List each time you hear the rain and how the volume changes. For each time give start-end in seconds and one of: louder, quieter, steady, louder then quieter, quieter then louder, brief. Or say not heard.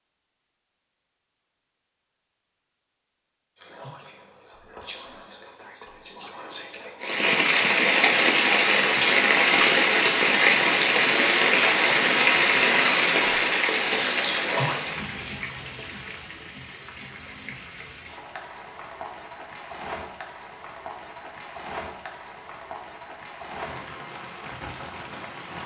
7.0-25.6 quieter.